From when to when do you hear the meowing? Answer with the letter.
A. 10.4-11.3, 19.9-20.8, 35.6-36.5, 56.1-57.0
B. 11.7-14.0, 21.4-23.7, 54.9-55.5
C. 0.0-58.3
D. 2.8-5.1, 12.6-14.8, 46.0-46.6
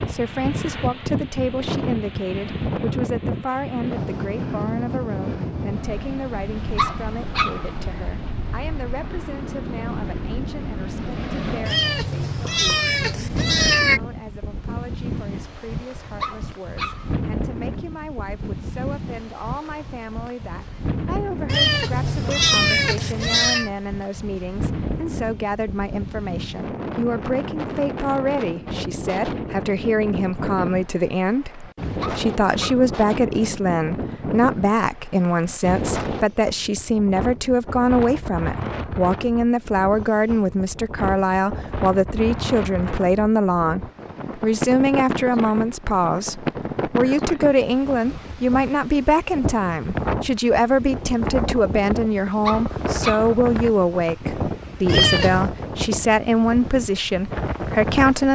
B.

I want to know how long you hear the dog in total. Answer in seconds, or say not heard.
4 s.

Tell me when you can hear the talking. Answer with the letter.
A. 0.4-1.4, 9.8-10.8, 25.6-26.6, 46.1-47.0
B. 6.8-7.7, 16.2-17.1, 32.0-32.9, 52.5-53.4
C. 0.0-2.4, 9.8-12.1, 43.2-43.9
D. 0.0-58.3
D.